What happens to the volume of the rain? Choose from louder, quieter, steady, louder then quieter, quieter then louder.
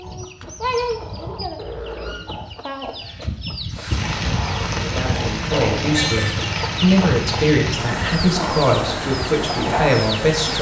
steady.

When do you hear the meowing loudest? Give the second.
6 s.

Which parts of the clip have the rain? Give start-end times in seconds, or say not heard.
3.7-10.5.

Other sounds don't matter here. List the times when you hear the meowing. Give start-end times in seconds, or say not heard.
1.8-2.2, 5.8-6.5.